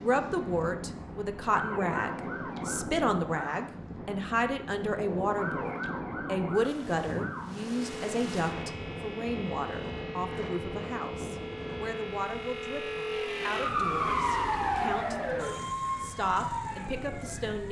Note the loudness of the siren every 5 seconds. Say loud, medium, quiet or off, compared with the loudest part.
medium, medium, loud, loud.